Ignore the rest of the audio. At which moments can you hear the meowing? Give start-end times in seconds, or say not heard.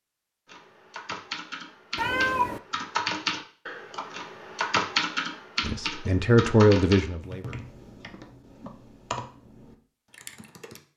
1.9-2.6.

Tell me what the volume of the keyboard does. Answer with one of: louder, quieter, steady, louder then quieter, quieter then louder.
louder then quieter.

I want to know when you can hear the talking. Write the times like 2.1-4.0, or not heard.
5.6-7.7.